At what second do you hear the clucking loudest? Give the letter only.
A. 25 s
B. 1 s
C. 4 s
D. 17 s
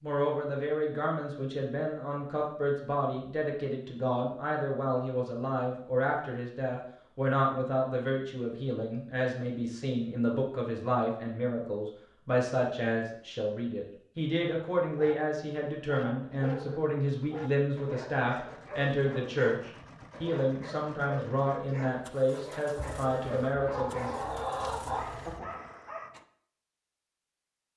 A.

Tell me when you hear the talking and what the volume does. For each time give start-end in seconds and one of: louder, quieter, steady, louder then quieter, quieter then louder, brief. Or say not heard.
0.0-24.2 steady.